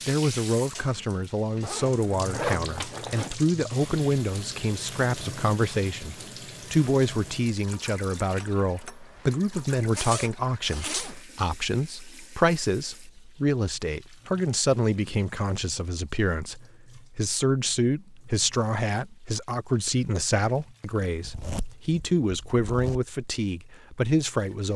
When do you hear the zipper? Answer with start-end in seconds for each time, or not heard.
1.6-3.4, 9.9-11.2, 21.2-23.0.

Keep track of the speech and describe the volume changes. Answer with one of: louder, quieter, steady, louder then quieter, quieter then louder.
steady.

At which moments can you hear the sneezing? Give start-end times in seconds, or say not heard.
not heard.